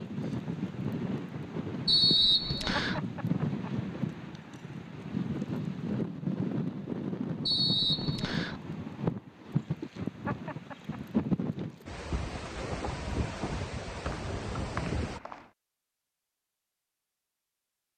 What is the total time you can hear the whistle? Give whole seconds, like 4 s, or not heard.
4 s.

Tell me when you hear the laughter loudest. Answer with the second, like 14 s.
3 s.